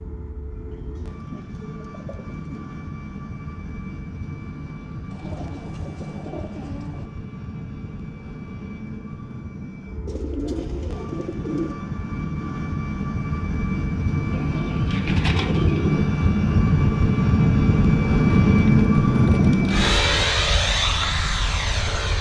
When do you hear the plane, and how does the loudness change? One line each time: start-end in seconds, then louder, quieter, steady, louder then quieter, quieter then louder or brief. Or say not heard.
0.0-22.1 louder.